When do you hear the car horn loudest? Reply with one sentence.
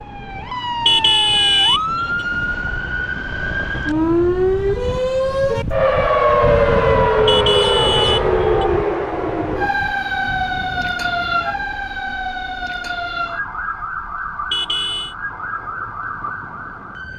The loudest moment of the car horn is at 1 second.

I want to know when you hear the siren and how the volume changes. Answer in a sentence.
You can hear the siren from 0.0 to 17.1 s, getting louder then quieter.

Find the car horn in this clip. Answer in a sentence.
You can hear the car horn from 0.8 to 2.0 s, from 7.2 to 8.7 s and from 14.5 to 15.2 s.